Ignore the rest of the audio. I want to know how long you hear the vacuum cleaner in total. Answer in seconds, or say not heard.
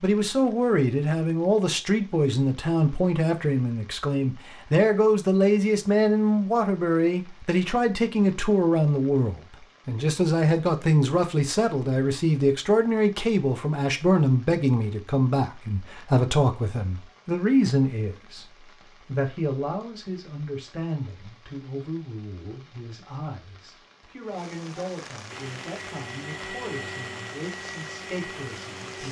4 s.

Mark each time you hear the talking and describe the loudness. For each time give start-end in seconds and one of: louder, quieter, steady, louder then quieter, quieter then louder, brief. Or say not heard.
0.0-29.0 quieter.